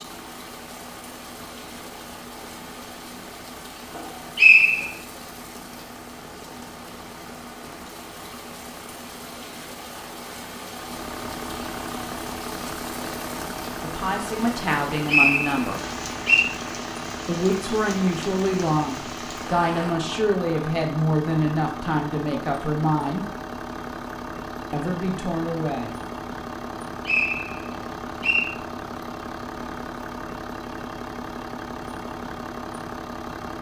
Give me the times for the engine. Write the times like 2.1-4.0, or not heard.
0.0-33.5.